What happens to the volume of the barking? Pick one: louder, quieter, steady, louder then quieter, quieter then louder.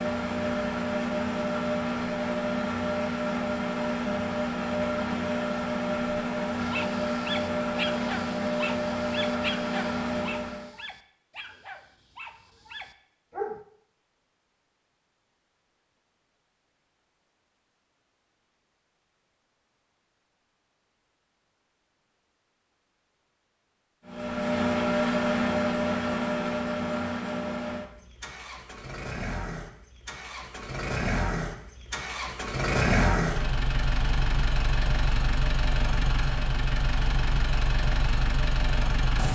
quieter.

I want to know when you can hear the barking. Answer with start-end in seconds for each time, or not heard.
6.6-13.6.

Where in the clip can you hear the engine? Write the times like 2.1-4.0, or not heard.
0.0-10.7, 24.1-39.3.